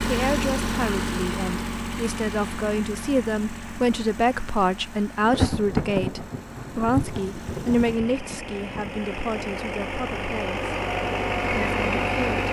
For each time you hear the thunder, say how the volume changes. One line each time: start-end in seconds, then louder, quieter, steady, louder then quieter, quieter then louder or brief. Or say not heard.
5.2-9.6 quieter.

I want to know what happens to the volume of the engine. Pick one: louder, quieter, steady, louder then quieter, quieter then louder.
quieter then louder.